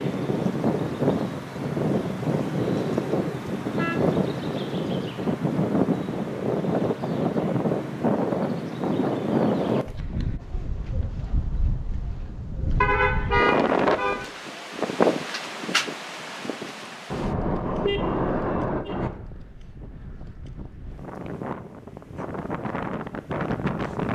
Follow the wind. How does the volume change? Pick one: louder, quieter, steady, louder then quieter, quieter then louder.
quieter.